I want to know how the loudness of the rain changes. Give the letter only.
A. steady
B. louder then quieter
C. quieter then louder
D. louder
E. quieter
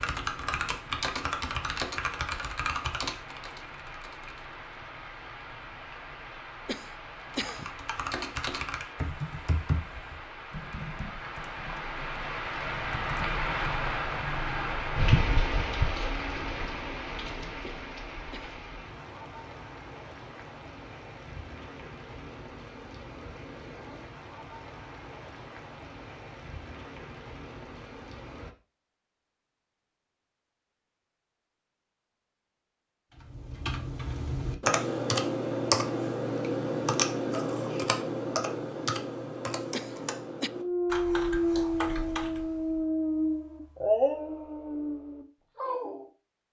B.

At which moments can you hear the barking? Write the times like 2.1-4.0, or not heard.
40.5-46.0.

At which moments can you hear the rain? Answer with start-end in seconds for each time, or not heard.
0.0-28.6.